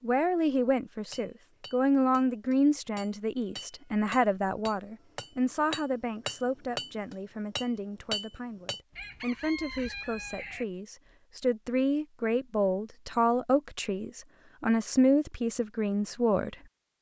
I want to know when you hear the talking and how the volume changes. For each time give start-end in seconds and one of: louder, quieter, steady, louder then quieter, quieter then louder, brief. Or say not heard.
0.0-16.6 quieter then louder.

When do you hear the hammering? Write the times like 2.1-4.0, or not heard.
1.1-8.8.